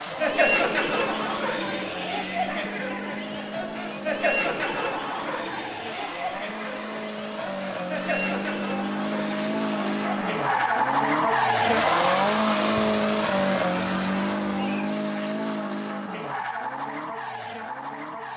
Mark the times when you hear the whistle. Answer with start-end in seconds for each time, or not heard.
not heard.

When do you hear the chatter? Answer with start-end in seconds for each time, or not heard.
0.0-14.9.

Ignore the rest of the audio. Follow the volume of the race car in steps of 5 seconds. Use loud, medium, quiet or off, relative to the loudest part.
quiet, medium, loud, medium.